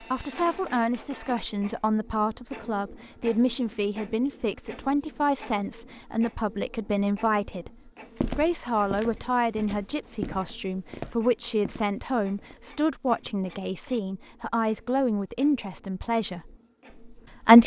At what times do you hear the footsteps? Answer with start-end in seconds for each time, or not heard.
8.2-13.3.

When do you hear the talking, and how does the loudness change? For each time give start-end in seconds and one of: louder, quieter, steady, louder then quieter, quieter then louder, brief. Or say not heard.
0.0-17.6 steady.